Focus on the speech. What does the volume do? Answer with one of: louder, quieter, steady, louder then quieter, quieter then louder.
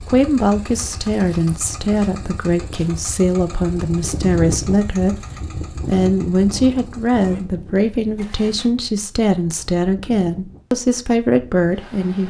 steady.